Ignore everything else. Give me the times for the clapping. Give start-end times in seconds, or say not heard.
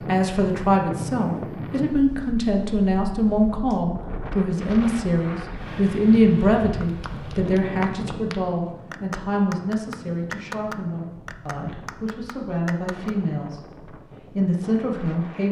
6.7-13.1.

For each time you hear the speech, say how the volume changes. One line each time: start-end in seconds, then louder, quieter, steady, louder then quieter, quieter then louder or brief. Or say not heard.
0.1-13.6 quieter
14.3-15.4 brief.